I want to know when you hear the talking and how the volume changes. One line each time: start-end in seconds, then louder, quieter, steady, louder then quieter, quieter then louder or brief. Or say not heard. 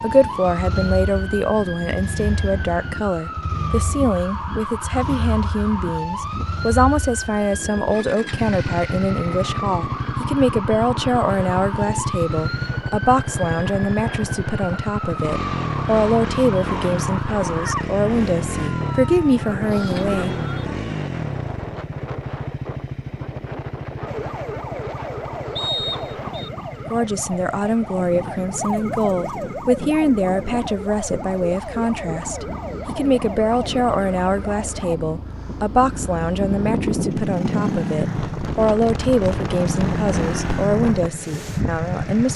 0.0-20.7 steady
26.9-42.3 steady.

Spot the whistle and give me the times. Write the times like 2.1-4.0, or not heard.
25.6-26.5.